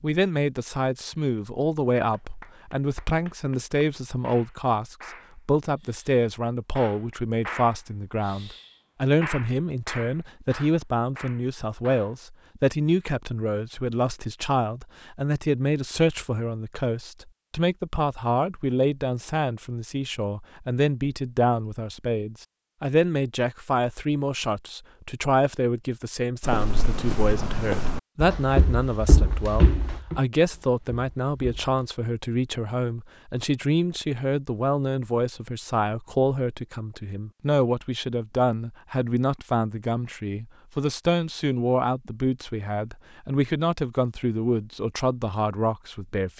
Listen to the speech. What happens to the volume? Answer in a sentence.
The volume of the speech stays about the same.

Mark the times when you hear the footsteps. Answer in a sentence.
You can hear the footsteps from 26.4 to 31.8 s.